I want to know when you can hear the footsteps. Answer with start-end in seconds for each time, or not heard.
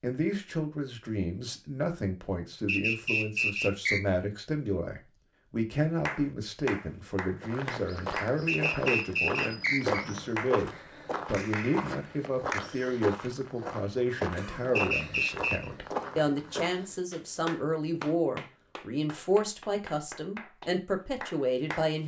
7.4-17.0.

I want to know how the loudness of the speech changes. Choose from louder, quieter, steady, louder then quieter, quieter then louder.
steady.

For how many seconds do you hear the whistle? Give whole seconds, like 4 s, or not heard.
4 s.